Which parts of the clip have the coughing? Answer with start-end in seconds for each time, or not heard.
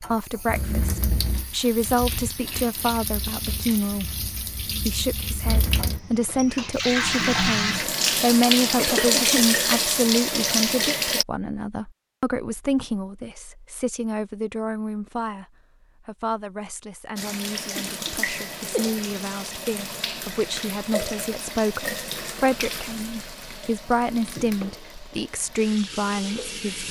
8.7-9.4, 17.8-19.0.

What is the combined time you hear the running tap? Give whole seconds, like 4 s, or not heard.
21 s.